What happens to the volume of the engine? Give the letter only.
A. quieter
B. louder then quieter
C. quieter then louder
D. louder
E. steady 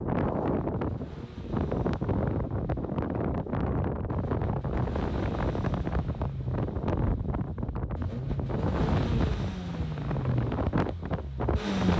D.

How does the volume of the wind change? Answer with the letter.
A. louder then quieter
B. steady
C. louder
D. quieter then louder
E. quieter
B.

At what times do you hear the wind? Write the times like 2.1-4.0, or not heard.
0.0-11.9.